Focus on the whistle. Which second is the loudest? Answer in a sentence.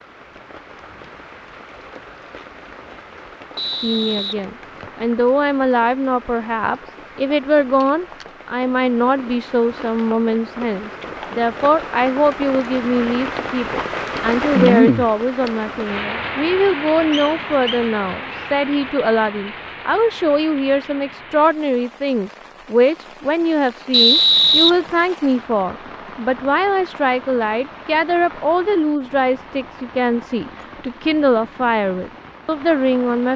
The volume of the whistle peaks at 24 seconds.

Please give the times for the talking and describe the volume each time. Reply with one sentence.
You can hear the talking from 3.8 to 33.3 s, at a steady volume.